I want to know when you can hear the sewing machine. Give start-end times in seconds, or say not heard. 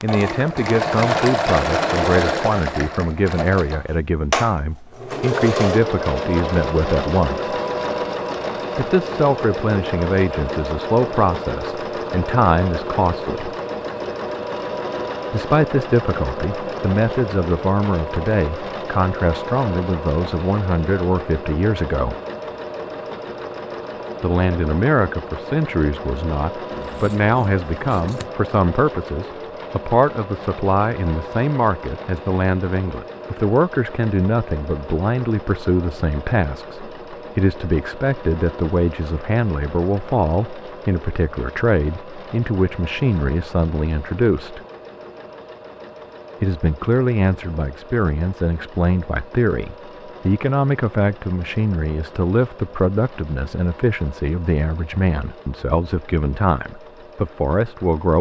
0.0-58.1.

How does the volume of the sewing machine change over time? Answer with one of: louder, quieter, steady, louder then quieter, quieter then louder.
quieter.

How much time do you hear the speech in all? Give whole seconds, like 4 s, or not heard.
51 s.